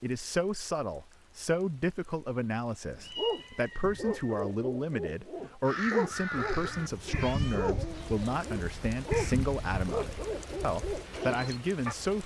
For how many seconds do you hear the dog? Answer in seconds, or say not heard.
9 s.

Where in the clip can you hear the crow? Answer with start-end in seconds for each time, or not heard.
5.7-11.6.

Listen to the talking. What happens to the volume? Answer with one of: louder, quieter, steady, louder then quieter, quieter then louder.
steady.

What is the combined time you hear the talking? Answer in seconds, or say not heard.
12 s.